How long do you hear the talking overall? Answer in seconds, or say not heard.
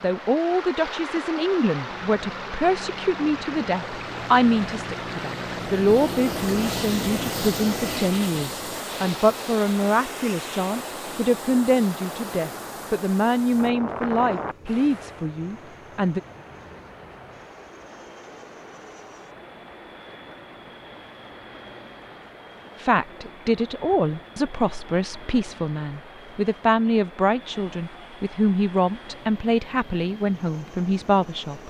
25 s.